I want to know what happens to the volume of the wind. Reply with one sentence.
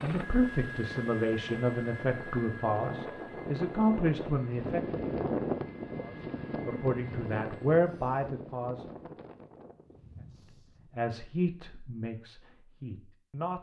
The loudness of the wind goes up, then down.